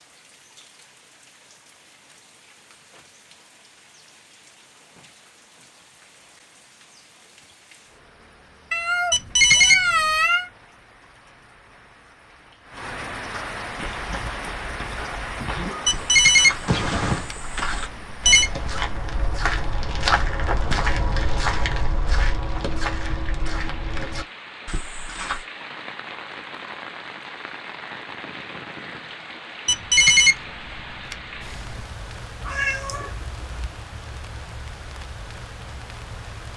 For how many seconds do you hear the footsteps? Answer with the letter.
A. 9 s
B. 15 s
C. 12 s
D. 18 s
C.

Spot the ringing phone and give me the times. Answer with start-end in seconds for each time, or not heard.
9.1-10.2, 15.8-18.5, 29.6-31.9.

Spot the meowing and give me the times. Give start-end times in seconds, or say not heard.
8.7-10.5, 16.6-17.2, 32.4-33.7.